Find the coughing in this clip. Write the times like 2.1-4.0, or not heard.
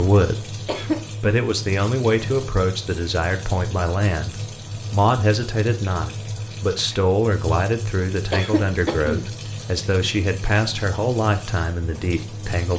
0.7-1.2, 8.3-9.2.